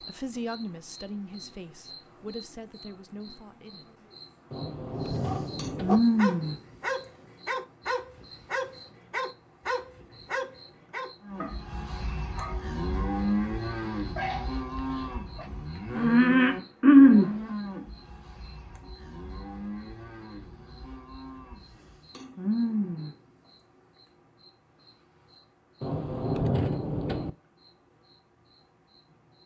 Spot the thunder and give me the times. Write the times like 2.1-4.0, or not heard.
4.5-6.0, 25.8-27.3.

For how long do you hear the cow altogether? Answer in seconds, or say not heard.
11 s.